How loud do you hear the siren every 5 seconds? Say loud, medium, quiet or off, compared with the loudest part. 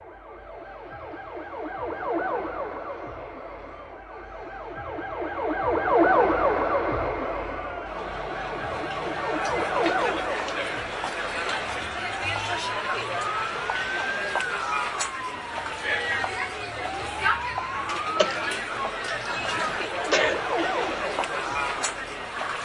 medium, loud, medium, medium, medium.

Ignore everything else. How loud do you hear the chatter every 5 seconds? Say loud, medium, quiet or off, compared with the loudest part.
quiet, loud, loud, loud, loud.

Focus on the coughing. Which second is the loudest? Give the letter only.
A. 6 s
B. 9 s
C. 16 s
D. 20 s
D.